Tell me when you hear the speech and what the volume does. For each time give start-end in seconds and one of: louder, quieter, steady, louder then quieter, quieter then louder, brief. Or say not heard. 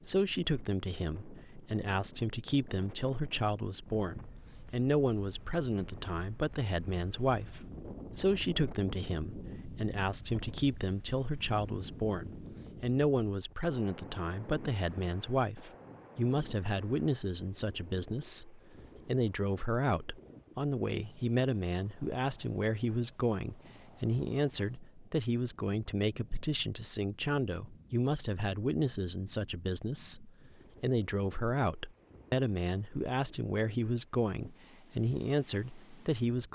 0.1-36.5 steady.